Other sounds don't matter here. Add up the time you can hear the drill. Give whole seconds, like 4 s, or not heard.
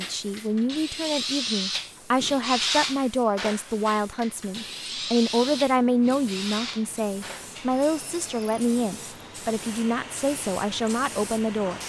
12 s.